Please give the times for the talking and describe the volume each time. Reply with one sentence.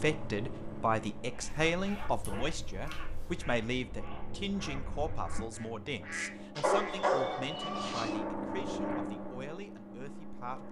The talking can be heard from 0.0 to 10.6 s, getting quieter.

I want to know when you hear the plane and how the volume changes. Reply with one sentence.
The plane can be heard from 0.0 to 10.6 s, getting quieter then louder.